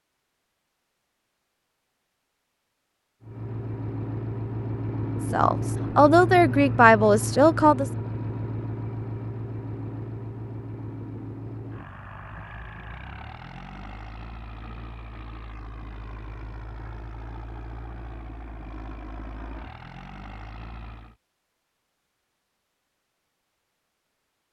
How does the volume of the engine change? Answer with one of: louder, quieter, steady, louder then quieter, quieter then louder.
quieter.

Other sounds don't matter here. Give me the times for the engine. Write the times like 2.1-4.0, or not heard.
3.2-21.1.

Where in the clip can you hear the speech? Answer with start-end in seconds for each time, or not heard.
5.3-7.9.